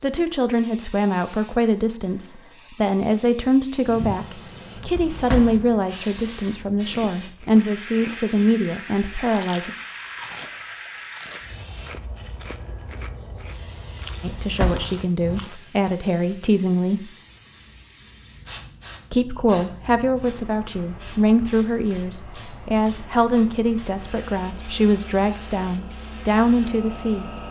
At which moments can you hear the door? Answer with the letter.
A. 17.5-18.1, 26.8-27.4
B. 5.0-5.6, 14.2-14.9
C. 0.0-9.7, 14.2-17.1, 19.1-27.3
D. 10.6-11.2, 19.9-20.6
B.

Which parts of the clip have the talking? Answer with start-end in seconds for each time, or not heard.
0.0-9.7, 14.2-17.1, 19.1-27.3.